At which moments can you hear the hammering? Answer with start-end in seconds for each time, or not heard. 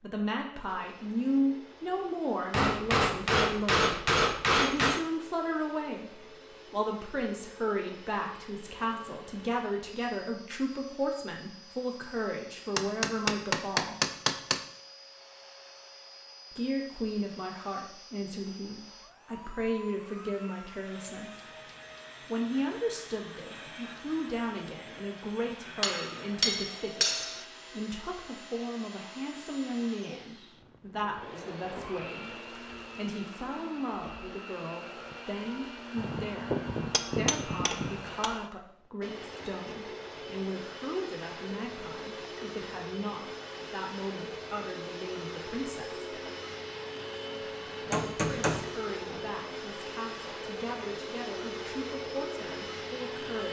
2.5-5.0, 12.8-14.6, 25.8-27.4, 36.0-38.3, 47.9-49.3.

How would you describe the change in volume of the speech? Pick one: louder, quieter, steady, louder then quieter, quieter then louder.
quieter.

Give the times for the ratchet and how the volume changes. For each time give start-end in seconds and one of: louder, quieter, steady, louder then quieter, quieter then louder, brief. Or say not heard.
not heard.